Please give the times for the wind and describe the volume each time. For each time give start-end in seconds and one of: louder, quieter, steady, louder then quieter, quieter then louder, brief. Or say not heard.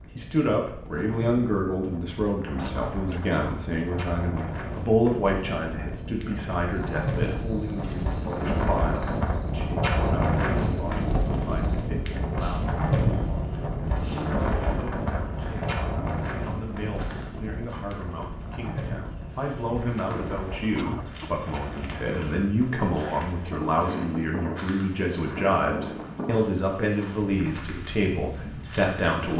0.0-29.3 louder then quieter.